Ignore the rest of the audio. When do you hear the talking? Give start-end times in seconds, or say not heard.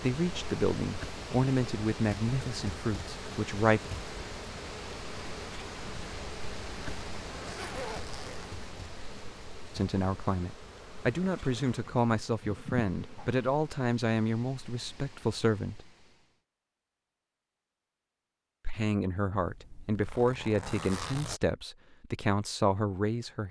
0.0-3.9, 9.8-15.8, 18.6-23.4.